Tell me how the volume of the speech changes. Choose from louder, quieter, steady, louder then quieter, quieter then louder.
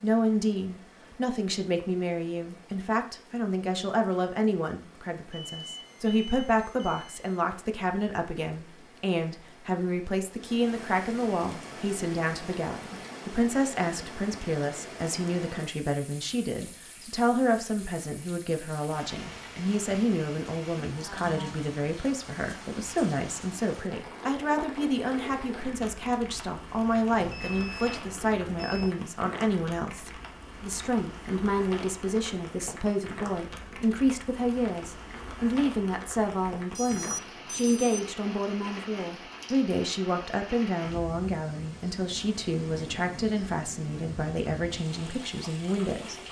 steady.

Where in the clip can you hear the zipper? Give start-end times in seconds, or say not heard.
not heard.